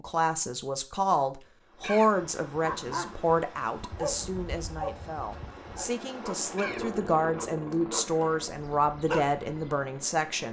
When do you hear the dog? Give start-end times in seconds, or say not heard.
2.5-9.8.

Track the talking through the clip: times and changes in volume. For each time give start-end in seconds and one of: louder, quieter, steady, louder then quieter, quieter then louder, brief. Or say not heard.
0.0-10.4 quieter then louder.